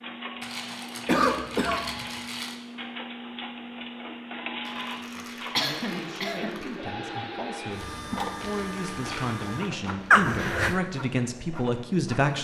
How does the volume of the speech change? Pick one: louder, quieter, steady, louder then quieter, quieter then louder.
louder.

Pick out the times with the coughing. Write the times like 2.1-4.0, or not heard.
1.1-2.0, 5.5-6.6, 10.1-10.8.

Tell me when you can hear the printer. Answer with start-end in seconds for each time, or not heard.
0.0-12.3.